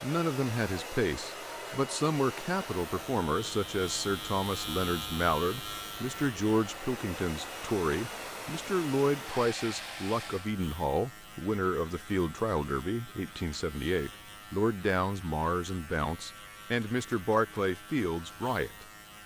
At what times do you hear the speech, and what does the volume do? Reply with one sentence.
The speech can be heard from 0.0 to 18.9 s, at a steady volume.